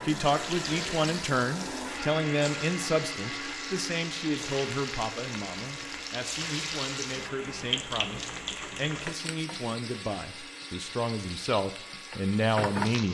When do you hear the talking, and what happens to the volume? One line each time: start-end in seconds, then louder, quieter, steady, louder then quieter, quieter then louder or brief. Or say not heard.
0.0-13.0 quieter then louder.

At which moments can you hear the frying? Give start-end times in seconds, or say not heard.
0.0-13.0.